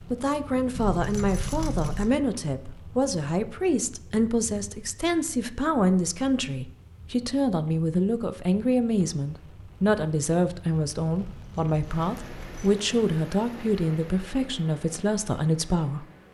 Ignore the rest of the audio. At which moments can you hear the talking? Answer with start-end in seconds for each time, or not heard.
0.0-16.1.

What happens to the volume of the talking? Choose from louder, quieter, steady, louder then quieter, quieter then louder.
steady.